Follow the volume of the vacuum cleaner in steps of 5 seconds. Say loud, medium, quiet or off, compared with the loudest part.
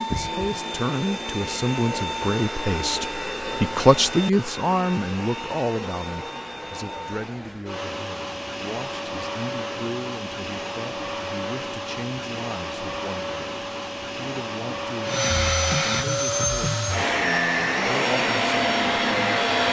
medium, medium, medium, loud.